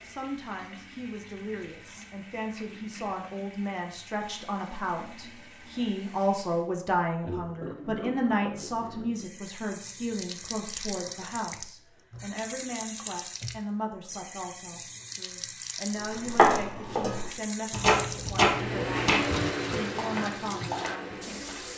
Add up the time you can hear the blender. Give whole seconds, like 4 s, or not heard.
3 s.